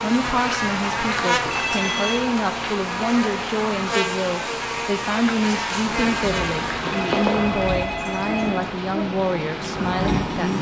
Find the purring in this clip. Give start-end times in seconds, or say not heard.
not heard.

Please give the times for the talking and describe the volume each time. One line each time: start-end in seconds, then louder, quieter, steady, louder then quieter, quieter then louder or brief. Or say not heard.
0.0-10.5 steady.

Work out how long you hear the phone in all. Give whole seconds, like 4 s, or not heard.
3 s.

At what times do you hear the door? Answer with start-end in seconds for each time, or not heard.
not heard.